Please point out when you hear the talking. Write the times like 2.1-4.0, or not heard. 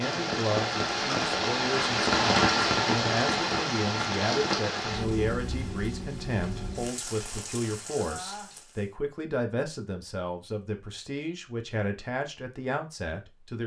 0.0-13.6.